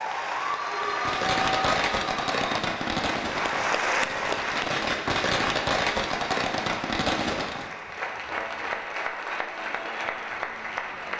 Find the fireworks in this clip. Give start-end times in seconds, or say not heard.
0.8-7.8.